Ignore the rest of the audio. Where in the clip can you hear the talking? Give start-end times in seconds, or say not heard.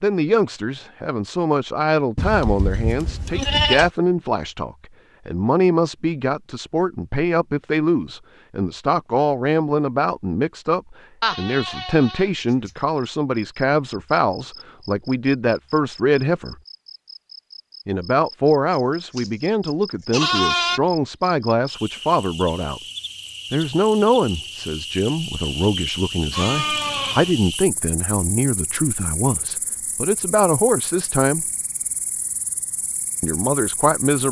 0.0-16.6, 17.9-22.8, 23.5-31.4, 33.2-34.2.